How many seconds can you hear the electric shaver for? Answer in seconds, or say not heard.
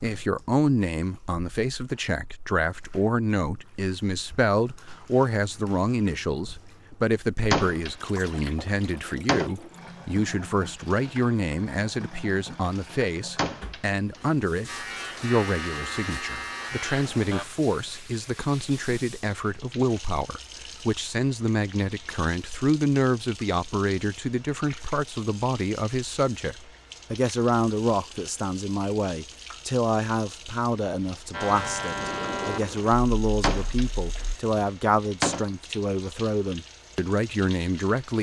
6 s.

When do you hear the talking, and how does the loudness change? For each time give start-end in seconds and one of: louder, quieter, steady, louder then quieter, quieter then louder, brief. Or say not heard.
0.0-38.1 steady.